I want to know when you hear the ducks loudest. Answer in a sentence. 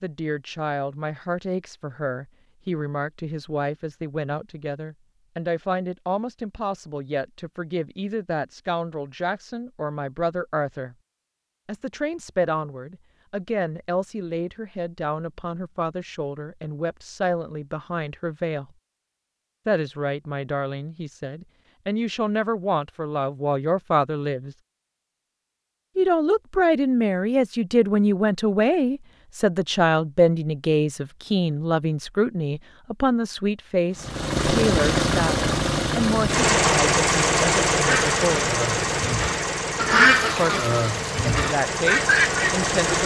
The volume of the ducks peaks at 40 seconds.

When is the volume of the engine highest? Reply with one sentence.
The loudest moment of the engine is at 37 seconds.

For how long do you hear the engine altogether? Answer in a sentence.
You can hear the engine for 9 seconds altogether.